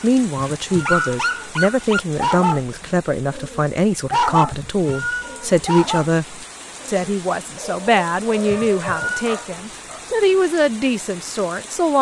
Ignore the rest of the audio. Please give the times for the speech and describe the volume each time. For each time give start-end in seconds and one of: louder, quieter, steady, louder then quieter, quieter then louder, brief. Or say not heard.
0.0-11.9 steady.